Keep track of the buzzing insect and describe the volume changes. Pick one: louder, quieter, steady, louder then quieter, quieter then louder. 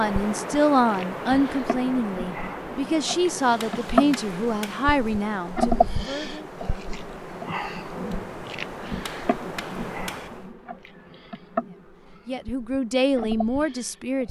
louder then quieter.